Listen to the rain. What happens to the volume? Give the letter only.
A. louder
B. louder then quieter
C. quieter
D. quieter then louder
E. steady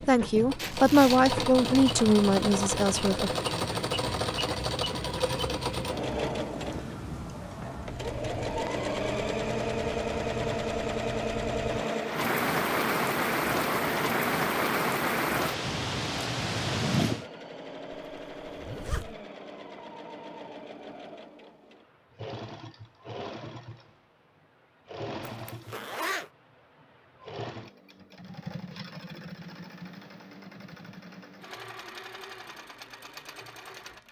A.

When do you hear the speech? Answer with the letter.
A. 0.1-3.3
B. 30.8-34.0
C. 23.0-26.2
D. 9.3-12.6
A.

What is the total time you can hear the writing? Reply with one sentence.
The writing can't be heard in this clip.